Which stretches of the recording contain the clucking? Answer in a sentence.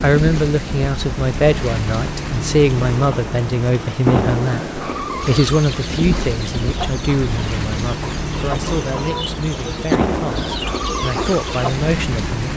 You can hear the clucking from 5.2 to 11.8 s.